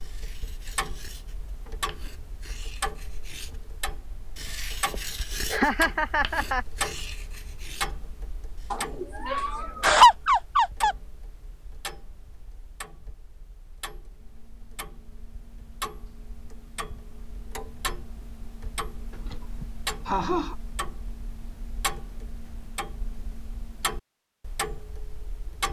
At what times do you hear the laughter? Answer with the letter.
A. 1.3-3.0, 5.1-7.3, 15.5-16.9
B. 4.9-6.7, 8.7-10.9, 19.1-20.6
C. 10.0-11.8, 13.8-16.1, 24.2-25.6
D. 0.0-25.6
B.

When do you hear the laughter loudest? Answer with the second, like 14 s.
10 s.